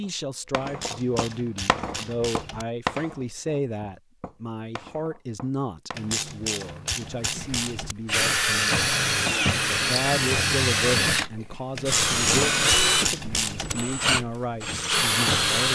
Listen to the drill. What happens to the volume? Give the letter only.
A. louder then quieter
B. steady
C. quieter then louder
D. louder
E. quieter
B.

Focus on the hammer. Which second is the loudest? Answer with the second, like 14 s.
3 s.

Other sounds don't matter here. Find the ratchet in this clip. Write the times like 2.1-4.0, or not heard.
0.7-2.6, 6.0-8.0, 11.8-13.8.